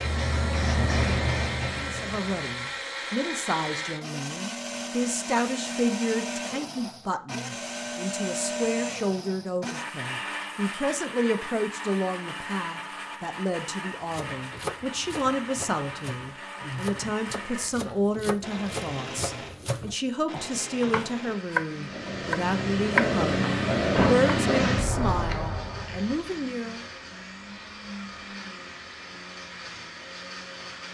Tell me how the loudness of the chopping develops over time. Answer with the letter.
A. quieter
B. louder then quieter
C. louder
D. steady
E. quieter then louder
C.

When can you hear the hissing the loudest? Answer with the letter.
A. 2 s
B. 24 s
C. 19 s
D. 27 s
B.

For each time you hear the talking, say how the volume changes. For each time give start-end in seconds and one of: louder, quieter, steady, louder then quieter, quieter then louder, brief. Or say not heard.
1.8-26.9 steady.